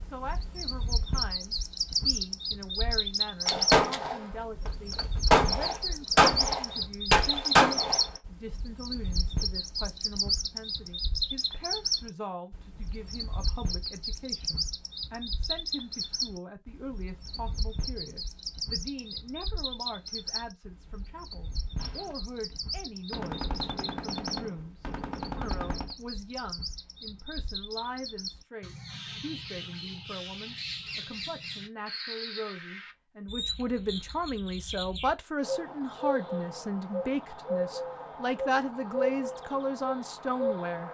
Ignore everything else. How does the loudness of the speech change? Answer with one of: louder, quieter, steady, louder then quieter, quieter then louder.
louder.